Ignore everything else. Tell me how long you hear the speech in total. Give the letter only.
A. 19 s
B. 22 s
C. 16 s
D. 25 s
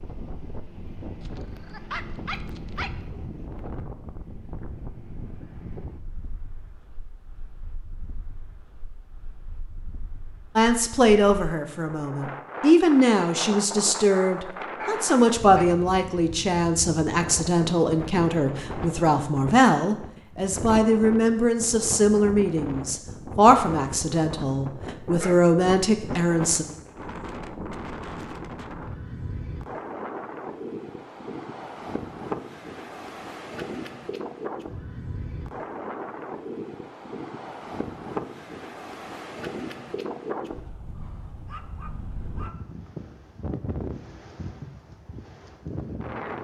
C.